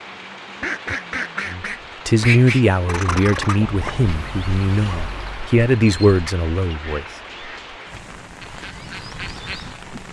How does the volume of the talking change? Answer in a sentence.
The volume of the talking goes down, then up.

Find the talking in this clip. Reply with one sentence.
The talking can be heard from 1.4 to 7.0 s.